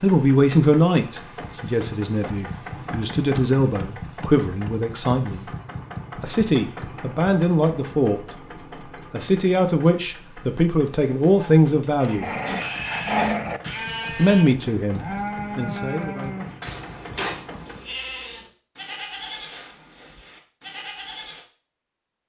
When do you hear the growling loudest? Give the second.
13 s.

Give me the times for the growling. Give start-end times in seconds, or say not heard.
12.0-13.6.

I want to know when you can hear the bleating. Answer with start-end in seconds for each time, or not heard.
11.3-21.4.